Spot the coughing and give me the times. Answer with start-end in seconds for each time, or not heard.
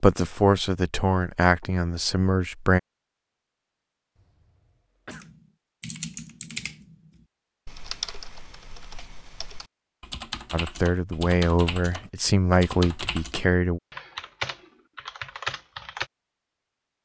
4.2-5.3.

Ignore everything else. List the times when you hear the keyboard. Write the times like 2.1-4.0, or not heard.
5.1-16.1.